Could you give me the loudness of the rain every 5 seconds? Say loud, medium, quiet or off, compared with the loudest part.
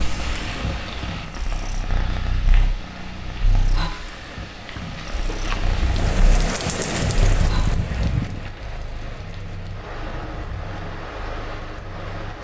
medium, loud, medium.